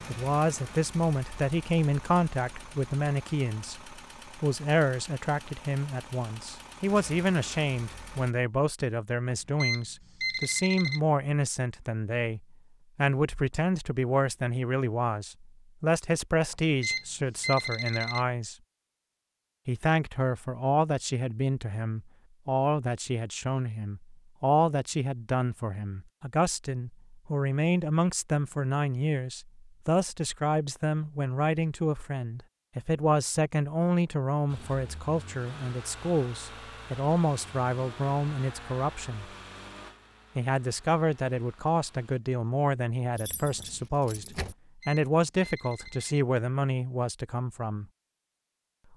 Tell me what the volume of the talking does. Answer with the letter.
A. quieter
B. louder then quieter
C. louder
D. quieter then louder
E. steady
E.